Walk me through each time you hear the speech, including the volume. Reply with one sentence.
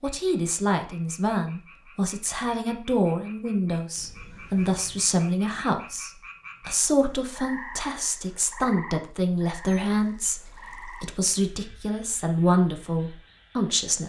The speech can be heard from 0.0 to 14.0 s, at a steady volume.